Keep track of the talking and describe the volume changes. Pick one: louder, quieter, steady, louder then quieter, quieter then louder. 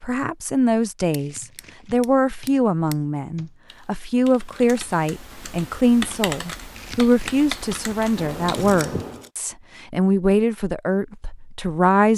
steady.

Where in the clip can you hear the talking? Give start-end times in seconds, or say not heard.
0.0-12.1.